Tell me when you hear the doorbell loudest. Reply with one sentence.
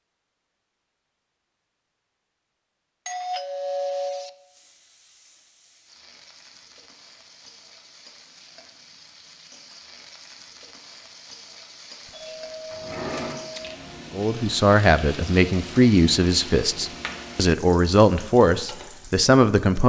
The volume of the doorbell peaks at 4 seconds.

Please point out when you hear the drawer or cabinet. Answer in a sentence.
You can hear the drawer or cabinet from 12.7 to 13.4 s.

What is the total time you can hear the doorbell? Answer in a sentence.
You can hear the doorbell for 3 seconds altogether.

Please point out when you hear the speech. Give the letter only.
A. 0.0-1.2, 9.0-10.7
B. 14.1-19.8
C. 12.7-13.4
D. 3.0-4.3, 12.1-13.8
B.